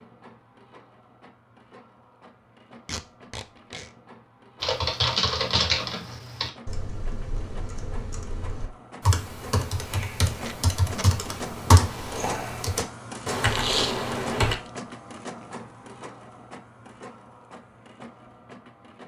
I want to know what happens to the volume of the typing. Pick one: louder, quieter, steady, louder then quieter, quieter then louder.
quieter then louder.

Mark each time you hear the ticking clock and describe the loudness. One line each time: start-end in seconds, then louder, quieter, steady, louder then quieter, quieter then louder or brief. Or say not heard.
not heard.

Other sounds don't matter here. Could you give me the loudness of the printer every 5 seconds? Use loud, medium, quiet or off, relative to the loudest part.
quiet, medium, loud, medium.